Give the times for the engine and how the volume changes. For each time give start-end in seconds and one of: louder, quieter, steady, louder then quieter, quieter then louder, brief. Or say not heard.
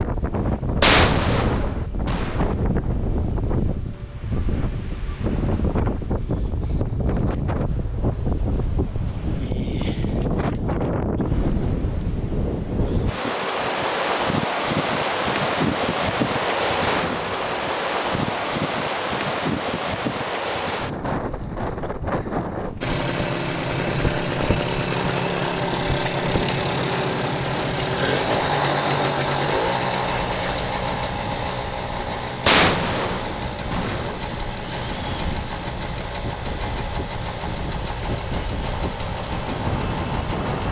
22.8-40.6 quieter.